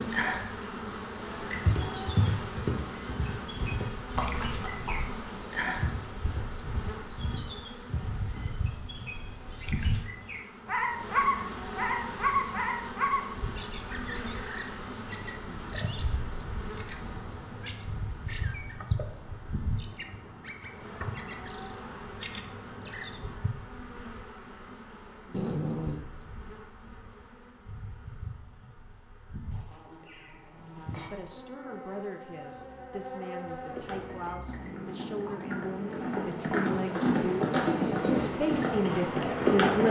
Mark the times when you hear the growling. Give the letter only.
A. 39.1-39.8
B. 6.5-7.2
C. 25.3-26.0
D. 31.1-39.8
C.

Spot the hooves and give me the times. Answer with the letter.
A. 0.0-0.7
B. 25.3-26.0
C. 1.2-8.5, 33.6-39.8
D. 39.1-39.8
C.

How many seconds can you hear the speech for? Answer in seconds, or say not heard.
9 s.